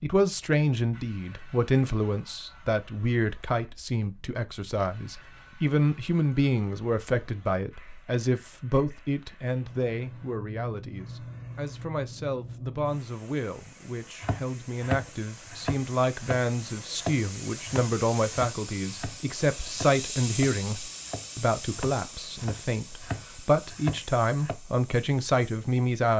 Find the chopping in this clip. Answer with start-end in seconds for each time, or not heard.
14.2-24.6.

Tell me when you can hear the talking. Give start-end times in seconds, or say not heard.
0.0-26.1.